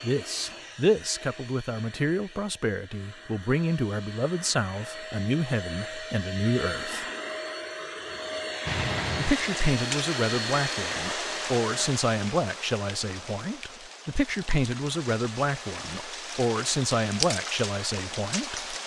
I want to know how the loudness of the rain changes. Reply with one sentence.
The loudness of the rain goes down, then up.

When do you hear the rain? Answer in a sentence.
The rain can be heard from 8.7 to 18.8 s.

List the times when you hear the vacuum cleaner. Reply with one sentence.
The vacuum cleaner can be heard from 0.0 to 11.9 s.